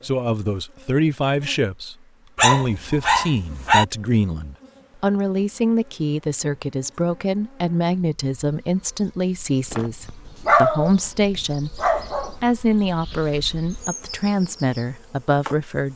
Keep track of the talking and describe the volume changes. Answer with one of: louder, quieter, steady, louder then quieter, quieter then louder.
steady.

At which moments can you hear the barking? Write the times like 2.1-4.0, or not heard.
2.4-3.9, 9.7-10.9, 11.8-12.3.